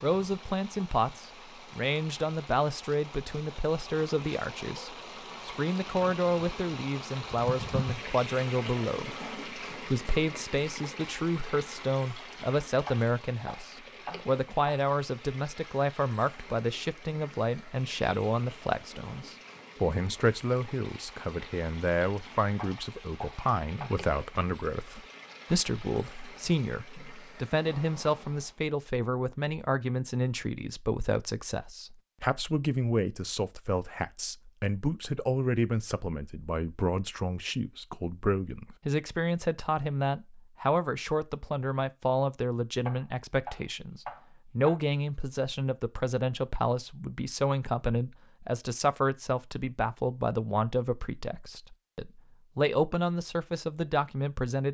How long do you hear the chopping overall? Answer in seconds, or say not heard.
5 s.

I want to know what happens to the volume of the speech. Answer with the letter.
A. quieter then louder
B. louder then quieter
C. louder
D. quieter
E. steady
E.